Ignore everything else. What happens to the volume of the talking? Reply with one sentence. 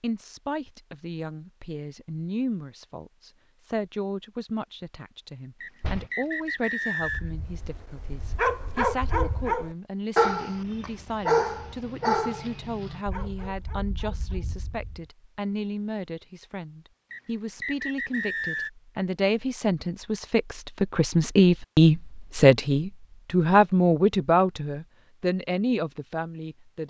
The loudness of the talking goes up.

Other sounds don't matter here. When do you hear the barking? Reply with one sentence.
You can hear the barking from 7.0 to 15.0 s.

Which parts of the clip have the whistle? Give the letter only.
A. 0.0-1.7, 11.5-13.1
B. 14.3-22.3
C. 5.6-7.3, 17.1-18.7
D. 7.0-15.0
C.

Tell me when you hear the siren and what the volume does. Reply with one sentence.
The siren can't be heard in this clip.